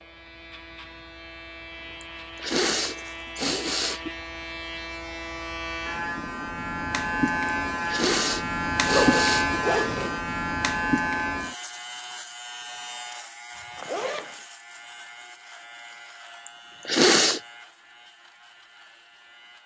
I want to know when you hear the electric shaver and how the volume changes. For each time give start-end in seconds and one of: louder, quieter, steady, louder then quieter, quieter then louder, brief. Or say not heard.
0.0-19.6 louder then quieter.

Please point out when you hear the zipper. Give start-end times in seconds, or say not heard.
2.8-3.4, 8.8-10.2, 13.8-14.4.